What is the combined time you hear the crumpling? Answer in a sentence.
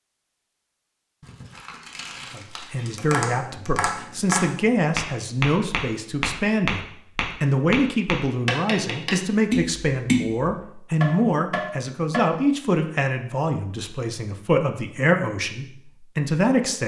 The crumpling can be heard for 2 seconds in total.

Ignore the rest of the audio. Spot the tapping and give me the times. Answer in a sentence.
You can hear the tapping from 3.0 to 12.3 s.